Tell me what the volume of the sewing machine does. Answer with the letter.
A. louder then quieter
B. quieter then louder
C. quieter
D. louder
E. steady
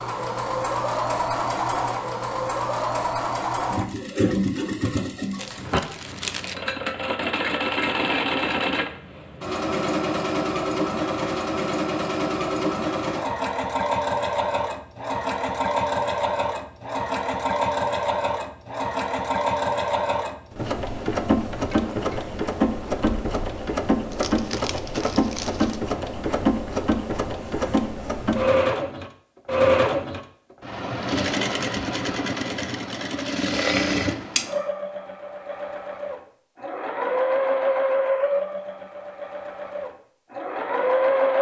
E.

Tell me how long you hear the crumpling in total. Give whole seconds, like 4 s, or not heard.
3 s.